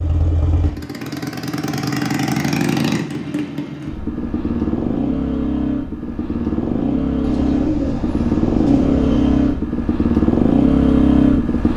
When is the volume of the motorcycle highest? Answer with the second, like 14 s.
11 s.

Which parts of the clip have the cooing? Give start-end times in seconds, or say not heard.
7.2-9.6.